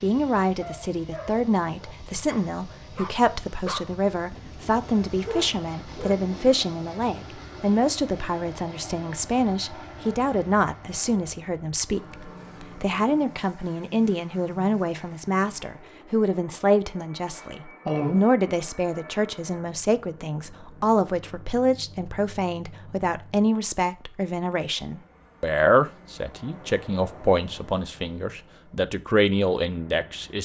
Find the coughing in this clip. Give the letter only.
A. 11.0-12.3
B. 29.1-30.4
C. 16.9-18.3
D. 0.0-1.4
C.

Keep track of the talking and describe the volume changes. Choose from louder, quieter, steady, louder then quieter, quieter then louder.
steady.